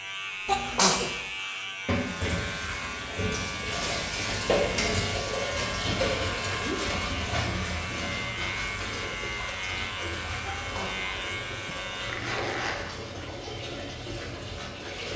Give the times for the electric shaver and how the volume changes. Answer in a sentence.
You can hear the electric shaver from 0.0 to 12.3 s, at a steady volume.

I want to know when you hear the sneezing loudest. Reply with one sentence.
The loudest moment of the sneezing is at 1 second.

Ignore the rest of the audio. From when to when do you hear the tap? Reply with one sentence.
The tap can be heard from 1.9 to 15.1 s.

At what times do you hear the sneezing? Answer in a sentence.
The sneezing can be heard from 0.5 to 1.1 s, from 5.8 to 6.8 s and from 10.4 to 11.1 s.